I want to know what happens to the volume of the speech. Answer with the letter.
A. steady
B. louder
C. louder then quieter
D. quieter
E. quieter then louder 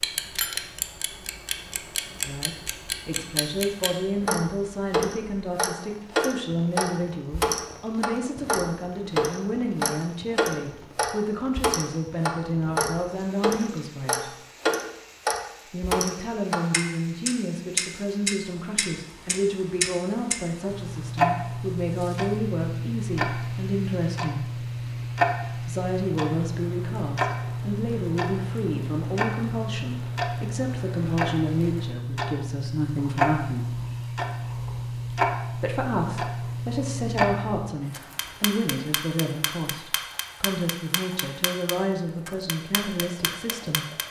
A.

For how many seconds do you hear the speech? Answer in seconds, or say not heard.
37 s.